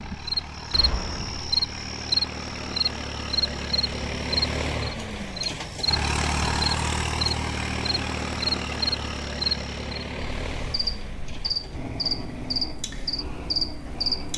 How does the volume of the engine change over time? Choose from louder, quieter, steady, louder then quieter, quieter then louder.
louder then quieter.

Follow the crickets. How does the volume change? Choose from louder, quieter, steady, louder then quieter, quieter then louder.
steady.